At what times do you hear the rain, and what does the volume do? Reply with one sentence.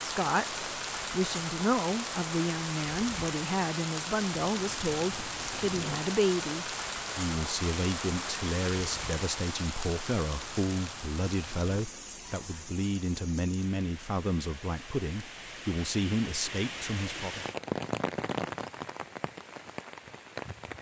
You can hear the rain from 0.0 to 20.7 s, getting quieter then louder.